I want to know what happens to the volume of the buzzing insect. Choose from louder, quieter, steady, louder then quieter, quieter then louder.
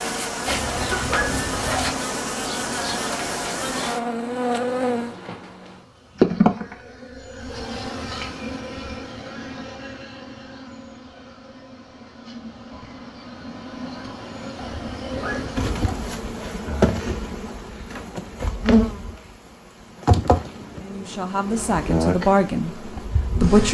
quieter then louder.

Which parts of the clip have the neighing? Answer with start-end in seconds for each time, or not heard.
not heard.